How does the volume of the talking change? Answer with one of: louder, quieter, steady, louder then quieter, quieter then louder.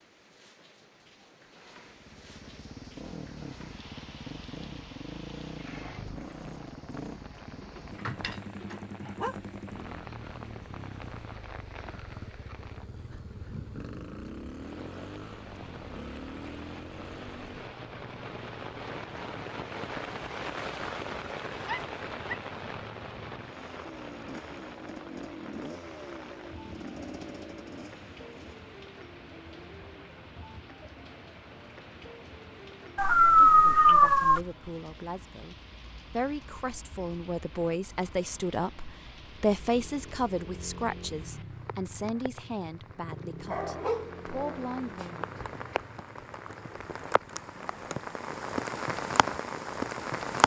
louder then quieter.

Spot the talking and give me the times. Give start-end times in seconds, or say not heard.
33.5-45.2.